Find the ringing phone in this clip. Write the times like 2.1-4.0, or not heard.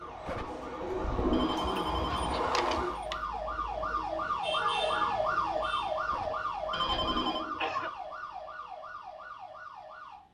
1.3-3.1, 6.7-7.5.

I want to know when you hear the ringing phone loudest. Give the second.
7 s.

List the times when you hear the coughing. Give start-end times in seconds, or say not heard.
0.2-1.8, 6.1-7.9.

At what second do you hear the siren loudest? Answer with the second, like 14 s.
5 s.